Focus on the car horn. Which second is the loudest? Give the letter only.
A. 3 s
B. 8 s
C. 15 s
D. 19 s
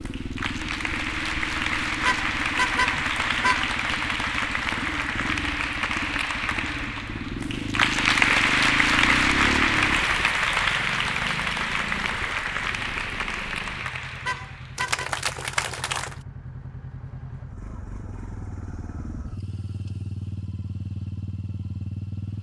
A.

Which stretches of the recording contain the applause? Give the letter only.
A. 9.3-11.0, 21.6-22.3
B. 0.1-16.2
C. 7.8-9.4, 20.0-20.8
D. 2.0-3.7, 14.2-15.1
B.